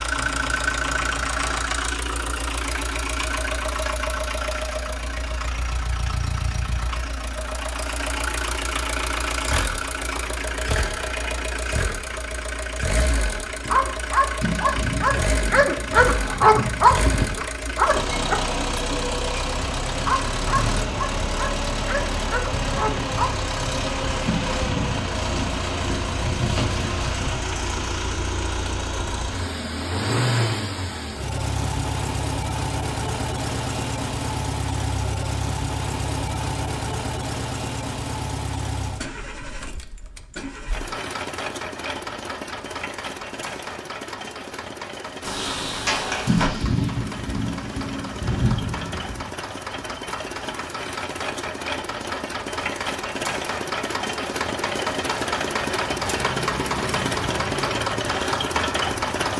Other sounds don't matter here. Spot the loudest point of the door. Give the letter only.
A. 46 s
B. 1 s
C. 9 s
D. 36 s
A.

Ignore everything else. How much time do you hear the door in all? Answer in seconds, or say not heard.
3 s.